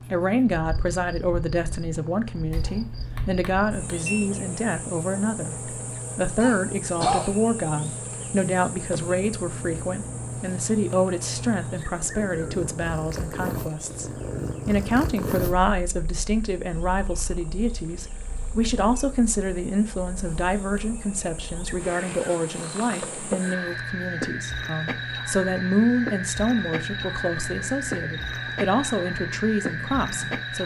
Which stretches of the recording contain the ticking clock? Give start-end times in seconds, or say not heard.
not heard.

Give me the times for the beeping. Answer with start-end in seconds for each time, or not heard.
2.5-4.3.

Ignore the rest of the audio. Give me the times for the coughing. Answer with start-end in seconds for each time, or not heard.
6.4-8.0.